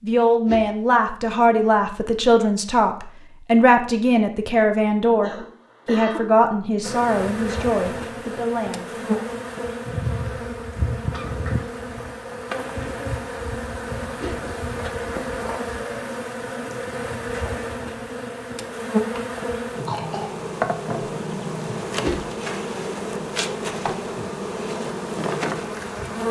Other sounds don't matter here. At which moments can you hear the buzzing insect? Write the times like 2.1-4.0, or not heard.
6.8-26.2.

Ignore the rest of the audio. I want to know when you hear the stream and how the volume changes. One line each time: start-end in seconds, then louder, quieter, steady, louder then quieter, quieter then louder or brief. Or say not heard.
not heard.